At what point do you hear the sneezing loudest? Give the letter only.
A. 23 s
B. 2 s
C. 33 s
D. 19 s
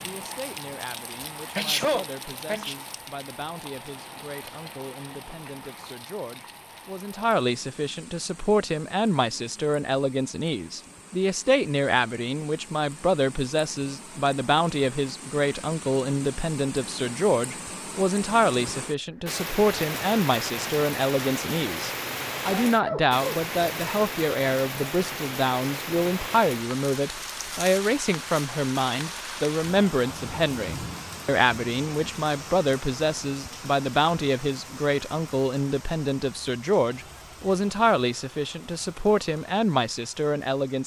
B.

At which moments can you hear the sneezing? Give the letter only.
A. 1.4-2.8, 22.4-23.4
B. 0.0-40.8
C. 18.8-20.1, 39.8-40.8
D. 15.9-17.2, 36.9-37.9
A.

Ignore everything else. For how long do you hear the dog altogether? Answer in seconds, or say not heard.
not heard.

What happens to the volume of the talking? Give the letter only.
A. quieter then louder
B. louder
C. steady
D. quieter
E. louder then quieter
B.